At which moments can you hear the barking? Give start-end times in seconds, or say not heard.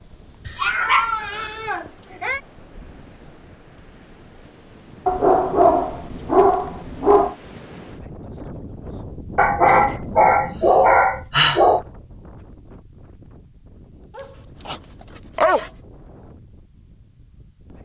0.5-2.4, 5.0-7.3, 9.3-11.8, 14.2-15.7.